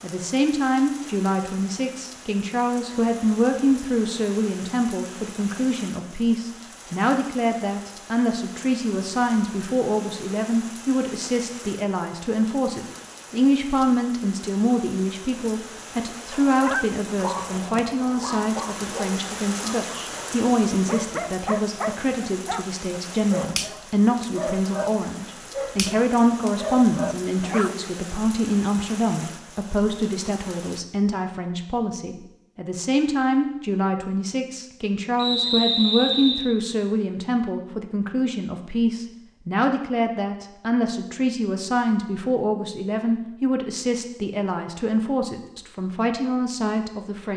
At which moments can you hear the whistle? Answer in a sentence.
You can hear the whistle from 35.1 to 36.5 s.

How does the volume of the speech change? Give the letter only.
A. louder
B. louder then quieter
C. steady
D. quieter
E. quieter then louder
C.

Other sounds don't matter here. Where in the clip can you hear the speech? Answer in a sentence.
The speech can be heard from 0.0 to 47.3 s.